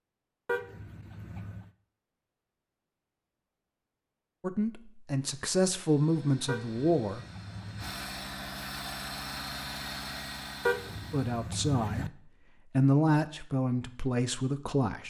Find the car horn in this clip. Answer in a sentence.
You can hear the car horn from 0.5 to 1.7 s, from 6.5 to 7.9 s and from 10.7 to 12.1 s.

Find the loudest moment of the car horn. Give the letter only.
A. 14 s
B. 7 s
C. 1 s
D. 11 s
D.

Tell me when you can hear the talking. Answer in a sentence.
The talking can be heard from 4.4 to 7.2 s and from 11.1 to 15.0 s.